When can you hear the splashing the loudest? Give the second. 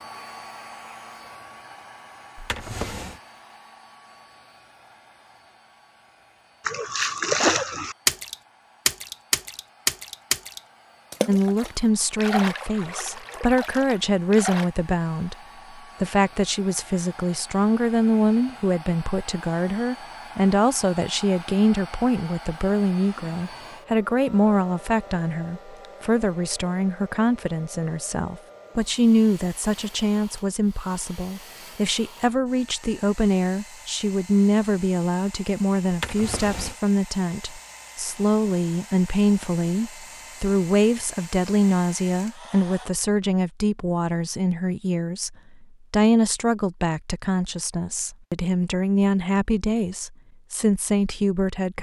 7 s.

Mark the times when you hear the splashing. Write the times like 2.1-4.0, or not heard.
6.7-14.7.